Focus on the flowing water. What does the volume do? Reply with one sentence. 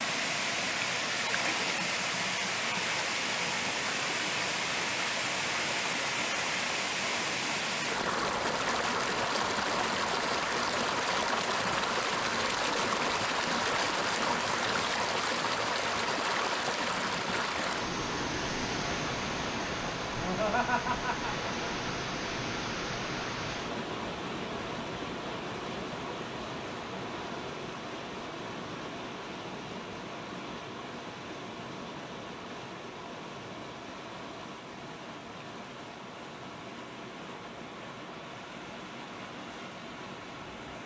The loudness of the flowing water goes down.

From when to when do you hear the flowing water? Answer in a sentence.
The flowing water can be heard from 0.0 to 40.8 s.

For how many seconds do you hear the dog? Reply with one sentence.
You can't hear the dog here.